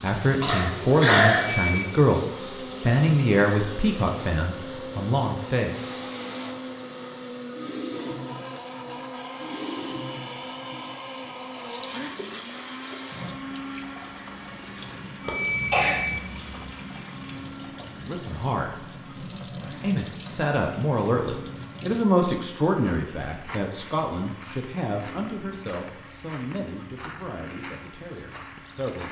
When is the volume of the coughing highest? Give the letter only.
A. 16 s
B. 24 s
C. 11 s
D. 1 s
D.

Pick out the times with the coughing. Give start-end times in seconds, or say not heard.
0.4-1.6, 15.2-16.8.